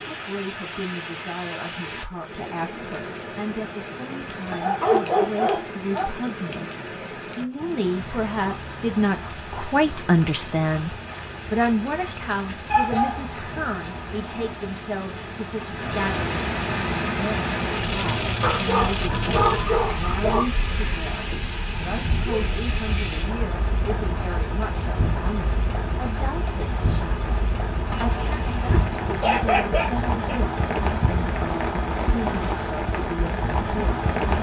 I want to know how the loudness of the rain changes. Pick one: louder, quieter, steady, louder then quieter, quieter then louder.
louder.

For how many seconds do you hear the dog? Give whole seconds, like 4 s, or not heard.
7 s.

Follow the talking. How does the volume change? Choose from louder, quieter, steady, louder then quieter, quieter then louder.
louder then quieter.